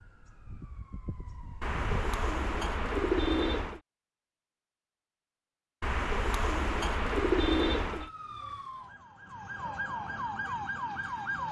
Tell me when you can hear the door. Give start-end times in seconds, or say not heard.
not heard.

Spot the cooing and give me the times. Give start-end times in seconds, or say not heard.
1.6-3.8, 5.8-8.1.